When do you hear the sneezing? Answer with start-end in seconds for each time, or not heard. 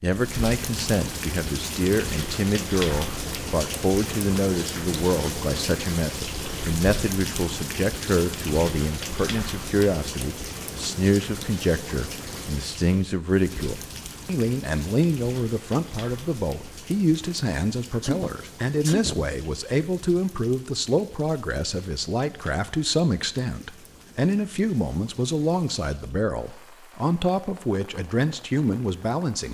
18.0-19.4.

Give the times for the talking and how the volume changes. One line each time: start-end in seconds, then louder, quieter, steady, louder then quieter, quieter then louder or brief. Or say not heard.
0.0-29.4 steady.